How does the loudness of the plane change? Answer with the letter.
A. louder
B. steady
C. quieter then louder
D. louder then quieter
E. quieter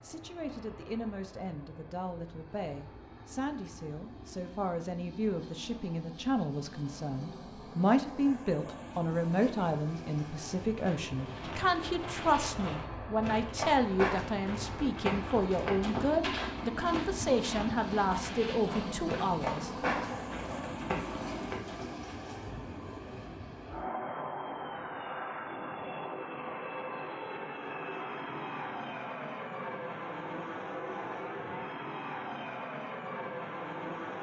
A.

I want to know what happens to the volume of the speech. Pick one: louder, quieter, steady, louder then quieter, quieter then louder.
louder.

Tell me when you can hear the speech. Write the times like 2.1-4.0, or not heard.
0.0-19.7.